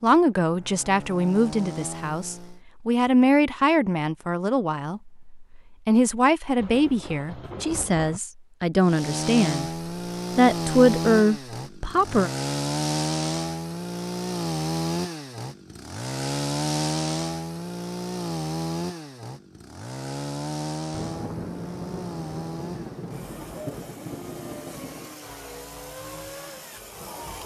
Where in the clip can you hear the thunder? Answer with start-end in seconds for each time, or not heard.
6.5-8.2, 20.9-25.2.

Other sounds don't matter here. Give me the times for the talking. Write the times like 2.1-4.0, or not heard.
0.0-9.7, 10.3-12.3.